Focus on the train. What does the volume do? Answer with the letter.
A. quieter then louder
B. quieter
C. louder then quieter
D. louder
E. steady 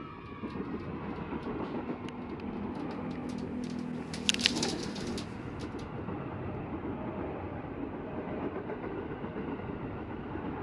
E.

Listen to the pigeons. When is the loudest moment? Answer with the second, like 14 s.
5 s.